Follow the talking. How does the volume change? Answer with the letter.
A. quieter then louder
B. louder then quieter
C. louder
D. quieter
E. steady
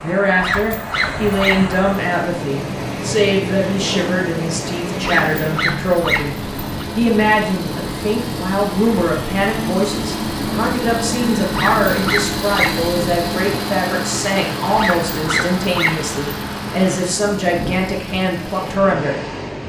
E.